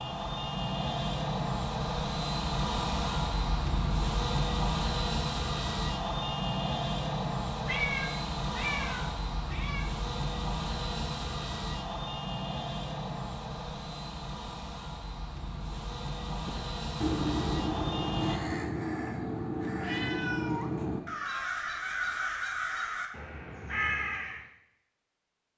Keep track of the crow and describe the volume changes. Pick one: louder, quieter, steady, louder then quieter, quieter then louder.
steady.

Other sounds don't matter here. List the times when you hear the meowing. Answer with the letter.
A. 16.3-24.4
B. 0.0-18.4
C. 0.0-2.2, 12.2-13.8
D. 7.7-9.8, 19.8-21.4
D.